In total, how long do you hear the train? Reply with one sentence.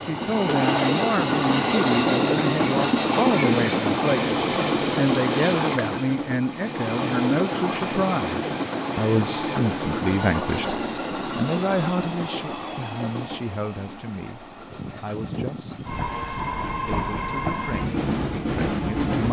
The train can be heard for 19 seconds in total.